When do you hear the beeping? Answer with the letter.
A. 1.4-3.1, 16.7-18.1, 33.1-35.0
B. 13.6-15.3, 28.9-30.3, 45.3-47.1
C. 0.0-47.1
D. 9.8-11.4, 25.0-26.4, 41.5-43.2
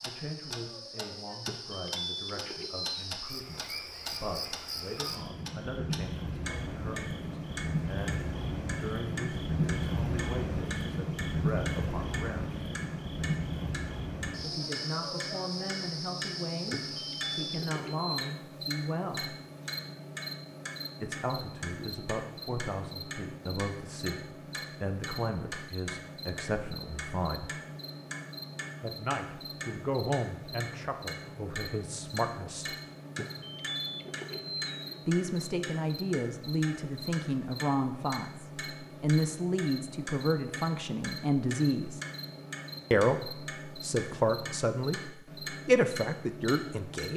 A.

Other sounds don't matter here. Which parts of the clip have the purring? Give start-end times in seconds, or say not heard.
not heard.